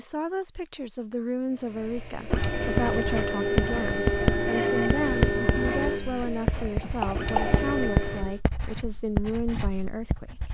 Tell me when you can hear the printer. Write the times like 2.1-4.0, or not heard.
1.6-8.4.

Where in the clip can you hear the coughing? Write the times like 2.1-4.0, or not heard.
6.6-7.6.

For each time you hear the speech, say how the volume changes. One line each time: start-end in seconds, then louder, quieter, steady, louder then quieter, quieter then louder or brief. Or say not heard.
0.0-10.4 steady.